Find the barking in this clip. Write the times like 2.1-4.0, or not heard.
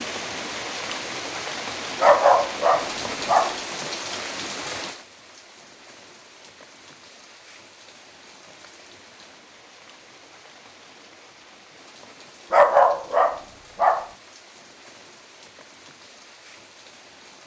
2.0-3.5, 12.5-14.1.